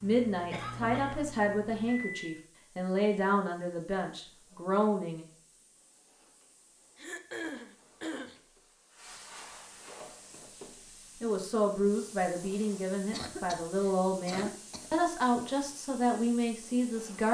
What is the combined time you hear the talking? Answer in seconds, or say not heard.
11 s.